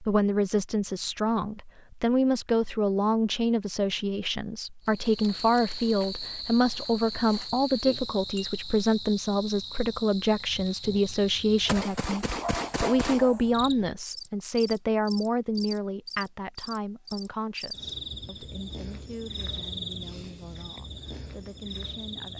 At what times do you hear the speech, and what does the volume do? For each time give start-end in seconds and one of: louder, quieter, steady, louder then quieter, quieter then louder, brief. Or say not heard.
0.0-22.3 quieter.